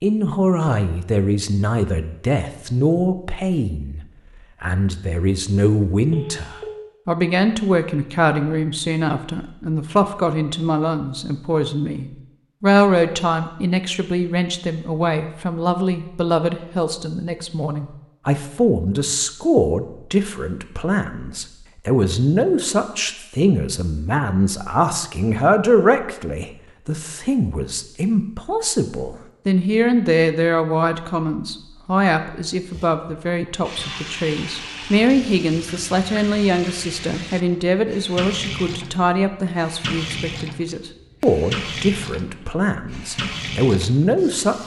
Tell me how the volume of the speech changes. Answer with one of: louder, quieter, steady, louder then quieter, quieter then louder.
steady.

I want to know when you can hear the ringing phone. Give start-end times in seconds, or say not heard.
6.1-6.7.